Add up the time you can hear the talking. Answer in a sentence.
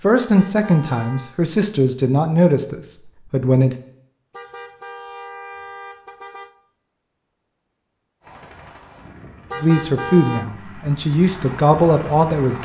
You can hear the talking for 7 seconds altogether.